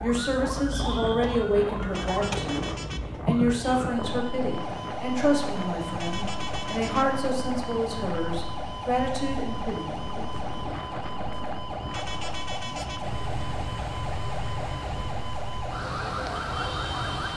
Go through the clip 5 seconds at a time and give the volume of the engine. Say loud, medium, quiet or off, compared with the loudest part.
off, off, loud, loud.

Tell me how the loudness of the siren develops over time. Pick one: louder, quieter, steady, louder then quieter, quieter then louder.
steady.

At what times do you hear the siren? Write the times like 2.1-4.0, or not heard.
0.0-17.3.